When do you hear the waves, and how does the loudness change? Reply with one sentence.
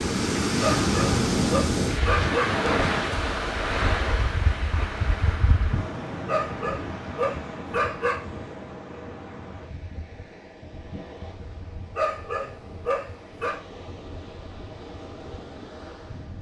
You can hear the waves from 0.0 to 16.3 s, getting quieter.